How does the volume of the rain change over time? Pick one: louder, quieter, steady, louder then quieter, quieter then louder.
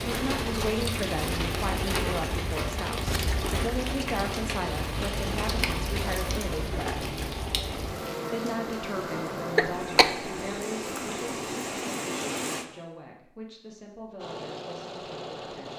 steady.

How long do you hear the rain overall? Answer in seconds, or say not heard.
13 s.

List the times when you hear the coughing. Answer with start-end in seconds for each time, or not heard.
9.6-11.2.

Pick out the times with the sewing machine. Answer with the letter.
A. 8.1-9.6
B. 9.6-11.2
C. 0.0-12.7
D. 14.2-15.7
D.